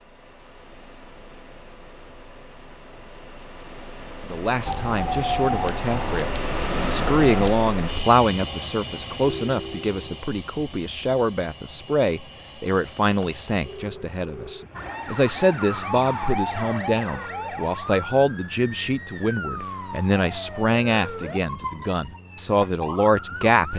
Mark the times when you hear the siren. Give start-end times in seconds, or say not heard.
4.7-7.5, 14.7-23.7.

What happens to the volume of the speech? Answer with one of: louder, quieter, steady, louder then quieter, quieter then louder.
steady.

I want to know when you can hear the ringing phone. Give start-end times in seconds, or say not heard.
9.2-10.2, 13.2-14.7.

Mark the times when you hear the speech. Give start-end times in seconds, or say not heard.
4.2-23.7.